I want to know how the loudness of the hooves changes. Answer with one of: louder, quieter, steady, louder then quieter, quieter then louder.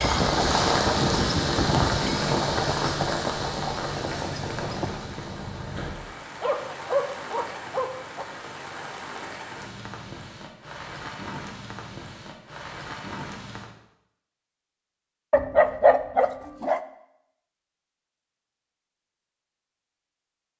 quieter.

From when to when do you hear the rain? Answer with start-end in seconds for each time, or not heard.
0.0-13.7.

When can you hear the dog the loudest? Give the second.
16 s.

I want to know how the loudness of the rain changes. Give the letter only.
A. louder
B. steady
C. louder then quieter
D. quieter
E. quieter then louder
D.